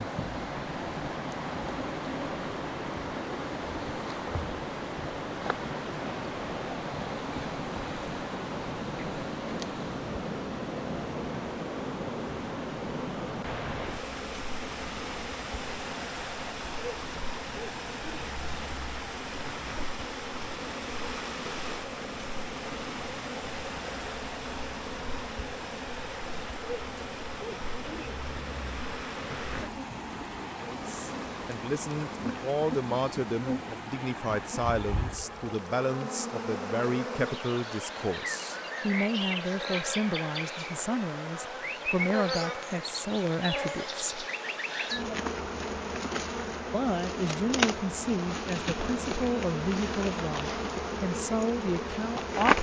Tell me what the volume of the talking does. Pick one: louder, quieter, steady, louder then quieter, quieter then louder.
steady.